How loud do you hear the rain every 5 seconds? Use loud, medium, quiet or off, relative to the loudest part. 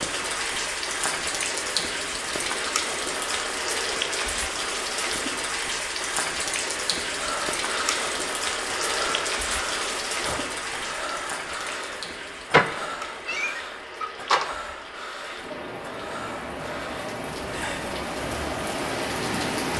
loud, loud, medium, loud.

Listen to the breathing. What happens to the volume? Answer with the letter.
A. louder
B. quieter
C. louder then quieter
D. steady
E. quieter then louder
B.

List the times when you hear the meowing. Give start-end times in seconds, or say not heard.
12.5-14.6.